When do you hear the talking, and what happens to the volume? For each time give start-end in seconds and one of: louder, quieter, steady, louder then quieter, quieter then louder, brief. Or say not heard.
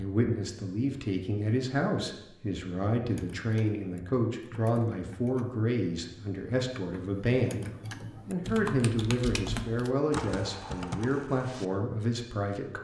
0.0-12.8 steady.